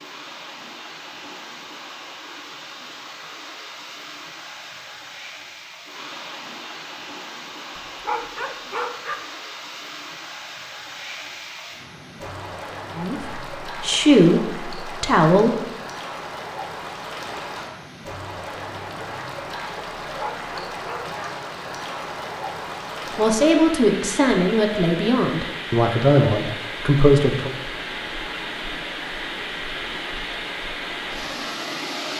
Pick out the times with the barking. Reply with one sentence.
You can hear the barking from 7.8 to 9.2 s and from 20.1 to 21.3 s.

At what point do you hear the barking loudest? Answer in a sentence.
The loudest moment of the barking is at 8 seconds.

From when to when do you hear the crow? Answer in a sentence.
The crow can't be heard in this clip.